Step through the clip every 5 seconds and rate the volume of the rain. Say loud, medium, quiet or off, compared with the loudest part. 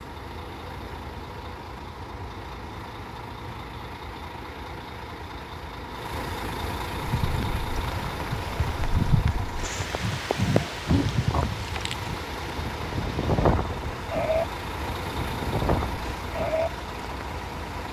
off, loud, loud, medium.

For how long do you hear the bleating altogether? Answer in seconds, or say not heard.
10 s.